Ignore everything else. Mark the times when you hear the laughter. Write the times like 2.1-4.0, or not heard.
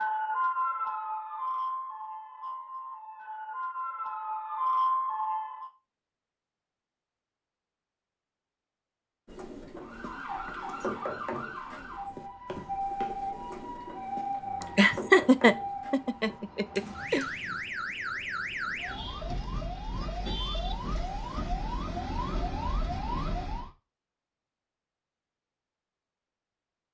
14.6-17.2.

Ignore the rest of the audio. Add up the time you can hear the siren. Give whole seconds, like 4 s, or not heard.
20 s.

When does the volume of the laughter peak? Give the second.
15 s.